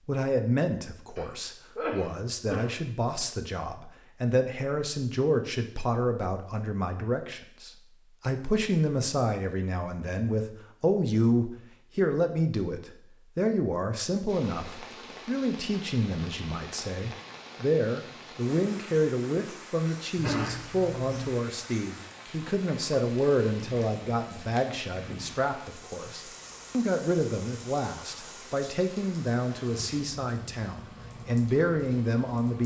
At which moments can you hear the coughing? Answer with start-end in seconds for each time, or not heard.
1.1-2.8, 20.1-21.3.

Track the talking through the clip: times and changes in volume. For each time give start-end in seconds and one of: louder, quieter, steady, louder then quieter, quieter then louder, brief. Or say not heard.
0.1-32.6 steady.